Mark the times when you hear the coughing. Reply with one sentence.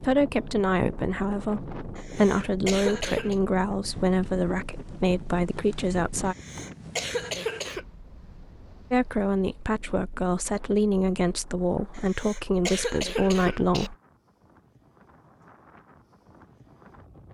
The coughing can be heard from 1.9 to 3.4 s, from 6.2 to 7.8 s and from 11.9 to 13.9 s.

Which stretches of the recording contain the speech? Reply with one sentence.
The speech can be heard from 0.0 to 6.3 s and from 8.9 to 13.9 s.